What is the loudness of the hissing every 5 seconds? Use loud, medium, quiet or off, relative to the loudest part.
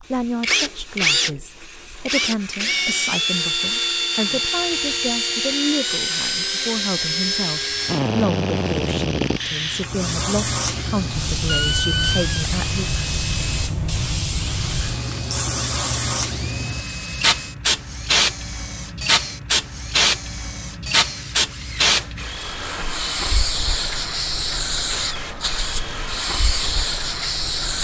quiet, quiet, loud, loud, loud, loud.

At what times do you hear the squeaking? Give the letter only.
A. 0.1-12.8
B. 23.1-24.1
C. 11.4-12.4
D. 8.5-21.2
C.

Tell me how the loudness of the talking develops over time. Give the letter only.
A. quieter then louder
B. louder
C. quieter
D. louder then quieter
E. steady
E.